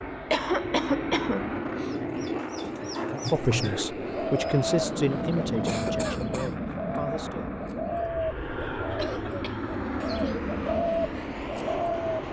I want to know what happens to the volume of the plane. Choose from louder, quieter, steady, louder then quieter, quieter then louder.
steady.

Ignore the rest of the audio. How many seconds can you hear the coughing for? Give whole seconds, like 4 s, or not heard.
3 s.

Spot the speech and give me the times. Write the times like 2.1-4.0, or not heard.
3.3-7.5.